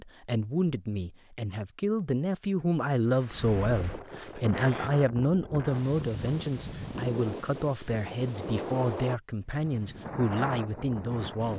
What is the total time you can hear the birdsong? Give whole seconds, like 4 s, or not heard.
not heard.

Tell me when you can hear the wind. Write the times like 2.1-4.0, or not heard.
3.0-11.5.